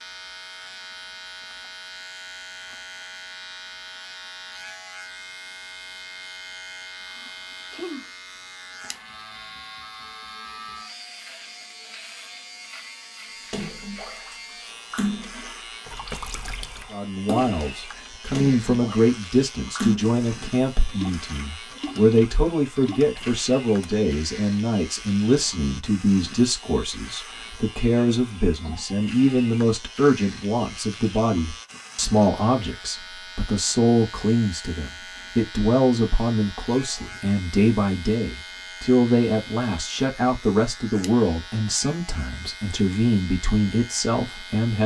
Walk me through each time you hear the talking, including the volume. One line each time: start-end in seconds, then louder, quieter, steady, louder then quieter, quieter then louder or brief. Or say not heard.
16.9-44.8 steady.